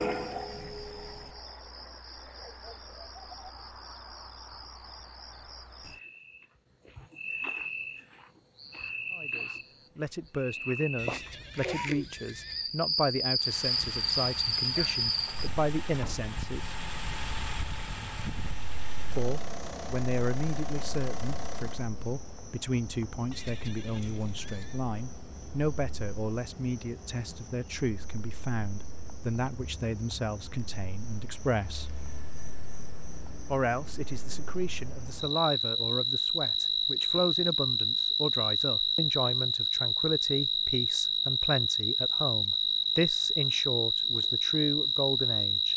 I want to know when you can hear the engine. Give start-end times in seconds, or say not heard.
13.3-21.9.